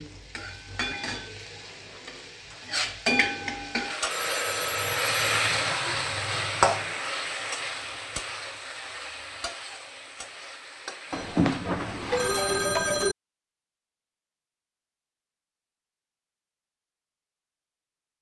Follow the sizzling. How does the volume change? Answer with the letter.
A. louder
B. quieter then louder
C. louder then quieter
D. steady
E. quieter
C.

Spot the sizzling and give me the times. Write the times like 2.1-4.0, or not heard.
0.0-13.1.